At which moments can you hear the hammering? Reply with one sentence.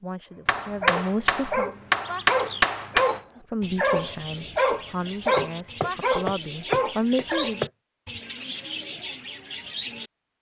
The hammering can be heard from 0.5 to 3.2 s and from 5.2 to 7.7 s.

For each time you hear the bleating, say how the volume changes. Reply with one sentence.
You can't hear the bleating here.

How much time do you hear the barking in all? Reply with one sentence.
You can hear the barking for 7 seconds altogether.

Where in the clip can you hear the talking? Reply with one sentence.
The talking can be heard from 0.0 to 1.7 s and from 3.4 to 7.7 s.